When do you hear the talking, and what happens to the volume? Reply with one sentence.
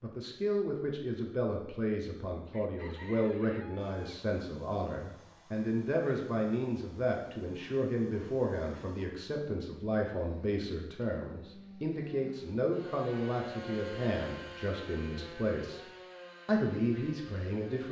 You can hear the talking from 0.0 to 15.8 s, at a steady volume; and briefly from 16.4 to 17.8 s.